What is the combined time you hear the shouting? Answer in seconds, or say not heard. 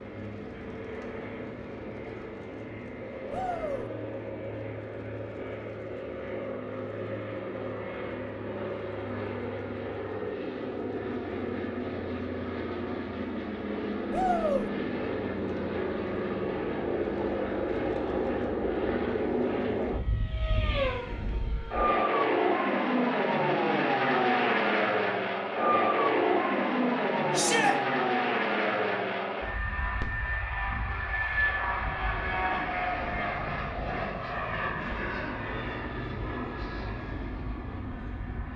2 s.